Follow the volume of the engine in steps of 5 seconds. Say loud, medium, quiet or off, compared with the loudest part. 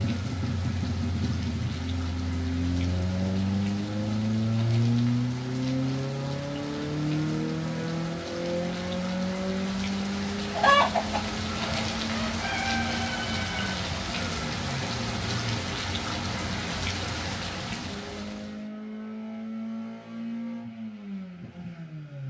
loud, loud, medium, medium, medium.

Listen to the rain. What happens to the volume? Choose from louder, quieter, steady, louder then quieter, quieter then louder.
louder.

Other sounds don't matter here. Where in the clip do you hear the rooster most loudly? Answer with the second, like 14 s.
11 s.